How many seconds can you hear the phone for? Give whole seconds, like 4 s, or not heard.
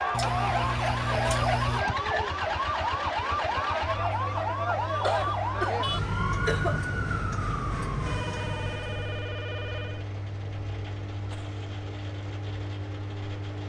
2 s.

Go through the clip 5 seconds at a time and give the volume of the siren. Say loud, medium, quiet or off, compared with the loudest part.
loud, loud, off.